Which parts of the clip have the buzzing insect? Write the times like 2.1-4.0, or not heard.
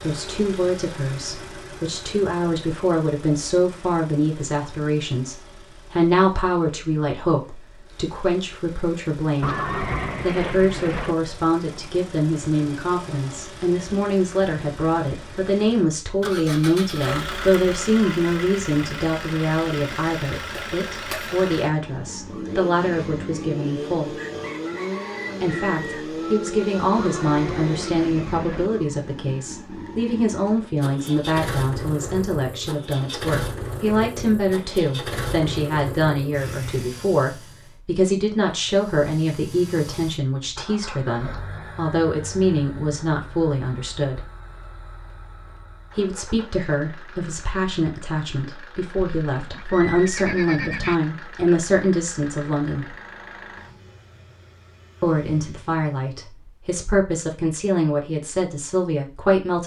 not heard.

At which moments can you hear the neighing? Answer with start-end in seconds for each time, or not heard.
9.4-11.2, 26.9-28.7, 49.0-51.0.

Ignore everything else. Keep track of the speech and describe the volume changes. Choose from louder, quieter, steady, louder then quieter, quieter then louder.
steady.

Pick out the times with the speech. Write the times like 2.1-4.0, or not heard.
0.0-9.6, 10.2-24.1, 25.4-44.3, 46.0-53.0, 55.0-59.6.